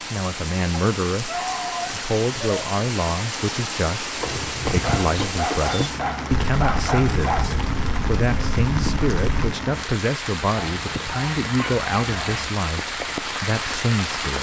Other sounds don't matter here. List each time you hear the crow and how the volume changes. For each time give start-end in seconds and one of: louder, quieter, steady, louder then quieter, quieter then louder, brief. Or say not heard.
not heard.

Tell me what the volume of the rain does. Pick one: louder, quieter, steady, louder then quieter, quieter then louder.
steady.